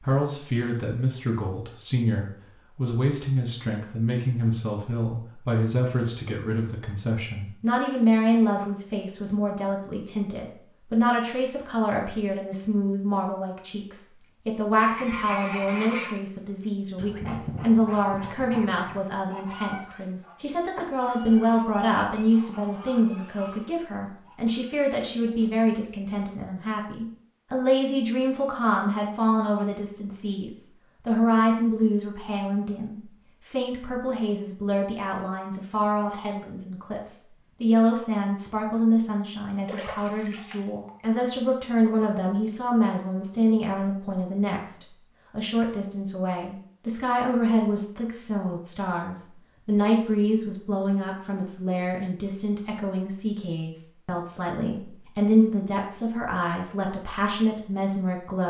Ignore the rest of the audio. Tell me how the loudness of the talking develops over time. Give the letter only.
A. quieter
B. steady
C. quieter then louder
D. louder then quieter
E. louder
B.